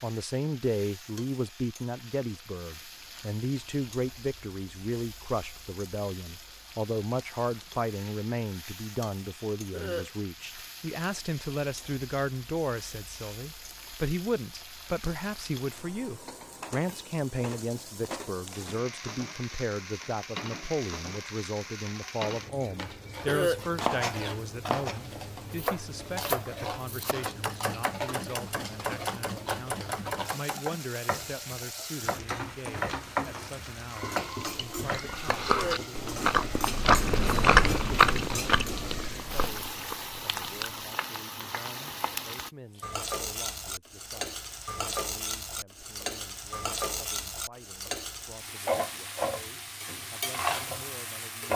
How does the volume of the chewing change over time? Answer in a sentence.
The volume of the chewing goes up, then down.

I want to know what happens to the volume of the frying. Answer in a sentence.
The loudness of the frying goes up.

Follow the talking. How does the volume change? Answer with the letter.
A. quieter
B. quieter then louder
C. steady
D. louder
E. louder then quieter
A.